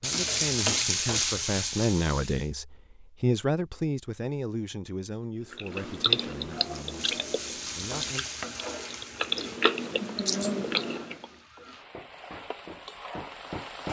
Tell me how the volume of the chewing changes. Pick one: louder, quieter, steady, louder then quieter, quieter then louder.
quieter then louder.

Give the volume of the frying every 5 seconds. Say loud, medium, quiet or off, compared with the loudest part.
loud, medium, quiet.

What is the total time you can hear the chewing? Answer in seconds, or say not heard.
6 s.